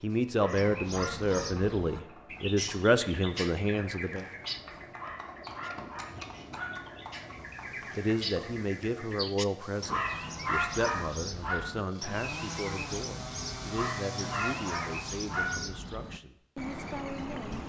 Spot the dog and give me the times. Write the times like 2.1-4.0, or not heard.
0.1-2.0, 4.7-6.9, 9.6-11.6, 13.7-15.7.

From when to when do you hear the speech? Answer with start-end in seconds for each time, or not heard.
0.0-4.2, 8.0-17.6.